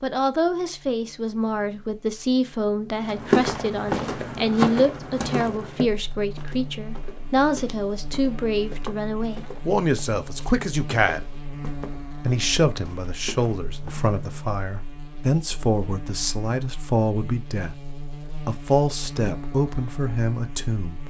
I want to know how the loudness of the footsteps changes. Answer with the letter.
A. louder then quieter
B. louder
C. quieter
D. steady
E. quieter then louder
C.